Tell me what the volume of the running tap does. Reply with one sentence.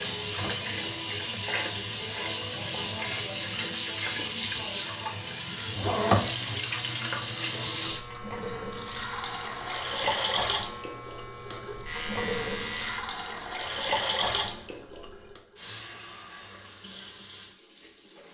The volume of the running tap goes down.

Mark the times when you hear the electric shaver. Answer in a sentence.
The electric shaver can be heard from 6.2 to 13.1 s.